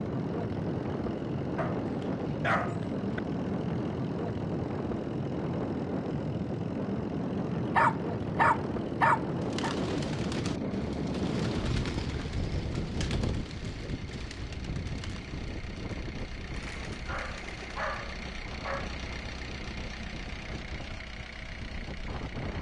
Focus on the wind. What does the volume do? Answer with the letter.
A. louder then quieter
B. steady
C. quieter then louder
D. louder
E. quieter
E.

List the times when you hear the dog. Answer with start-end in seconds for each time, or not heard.
1.6-3.2, 7.8-9.8, 17.1-18.9.